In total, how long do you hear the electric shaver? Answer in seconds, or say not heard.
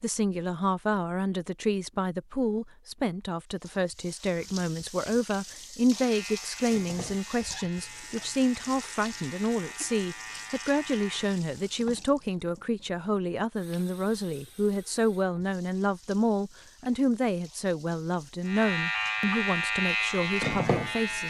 8 s.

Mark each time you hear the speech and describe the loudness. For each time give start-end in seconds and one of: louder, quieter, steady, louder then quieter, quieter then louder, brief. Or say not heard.
0.0-21.2 steady.